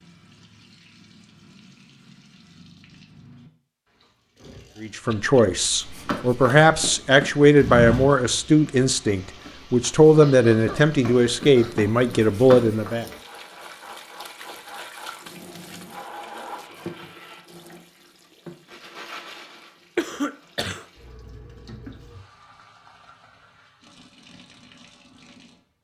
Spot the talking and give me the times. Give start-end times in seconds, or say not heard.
4.8-13.1.